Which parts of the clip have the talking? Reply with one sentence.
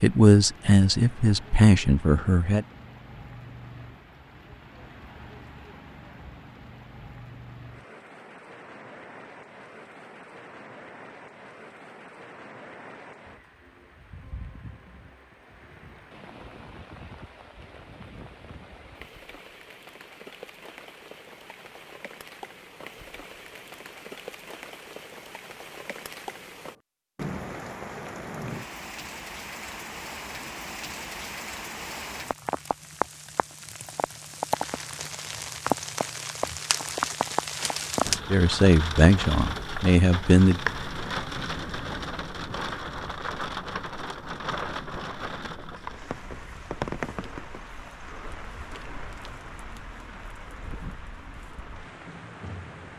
The talking can be heard from 0.0 to 2.6 s and from 38.3 to 40.6 s.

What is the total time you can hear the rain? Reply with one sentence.
You can hear the rain for 53 seconds altogether.